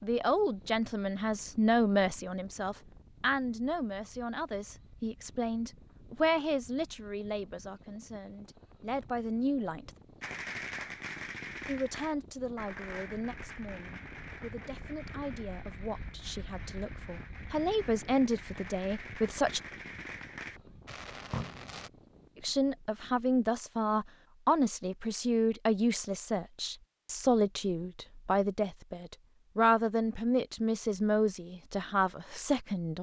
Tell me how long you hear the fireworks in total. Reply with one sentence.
You can hear the fireworks for 12 seconds altogether.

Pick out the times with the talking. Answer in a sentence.
You can hear the talking from 0.0 to 9.9 s, from 11.7 to 19.6 s and from 22.4 to 32.9 s.